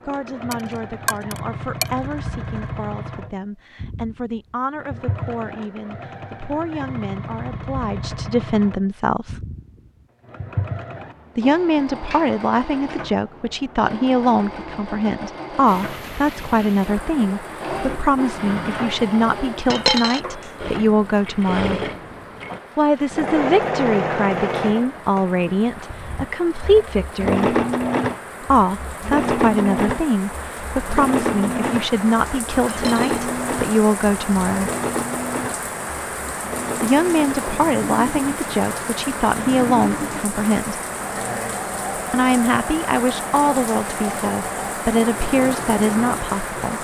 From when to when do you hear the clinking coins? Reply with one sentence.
You can hear the clinking coins from 0.5 to 2.3 s, from 19.7 to 20.2 s and from 32.6 to 33.2 s.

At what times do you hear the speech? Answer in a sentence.
You can hear the speech from 0.1 to 9.4 s, from 11.3 to 21.8 s, from 22.8 to 27.6 s, from 28.4 to 34.7 s, from 36.8 to 40.8 s and from 42.1 to 46.7 s.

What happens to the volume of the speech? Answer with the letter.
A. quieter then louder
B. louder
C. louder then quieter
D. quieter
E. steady
B.